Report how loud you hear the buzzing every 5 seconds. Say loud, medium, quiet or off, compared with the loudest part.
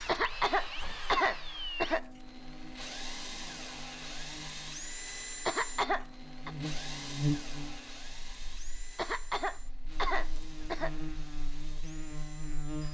quiet, loud, loud.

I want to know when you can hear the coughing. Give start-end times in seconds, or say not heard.
0.1-2.0, 5.5-6.5, 8.9-10.9.